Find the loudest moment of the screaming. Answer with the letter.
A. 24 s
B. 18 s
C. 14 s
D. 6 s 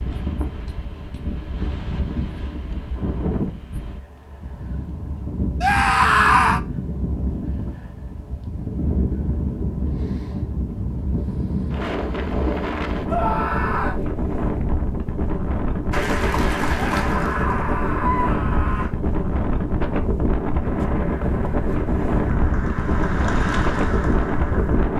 D.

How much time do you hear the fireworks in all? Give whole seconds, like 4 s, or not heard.
not heard.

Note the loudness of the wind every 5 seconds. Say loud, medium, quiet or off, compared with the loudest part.
medium, medium, loud, loud, loud.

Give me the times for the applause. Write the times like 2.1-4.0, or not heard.
15.9-18.9, 20.6-24.9.